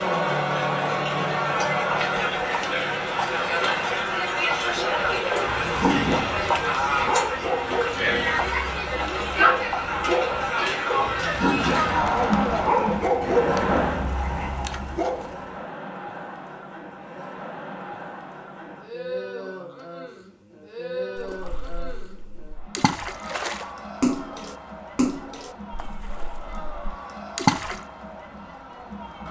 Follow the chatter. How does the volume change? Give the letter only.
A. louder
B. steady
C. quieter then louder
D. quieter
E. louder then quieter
D.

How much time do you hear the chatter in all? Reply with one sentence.
You can hear the chatter for 29 seconds altogether.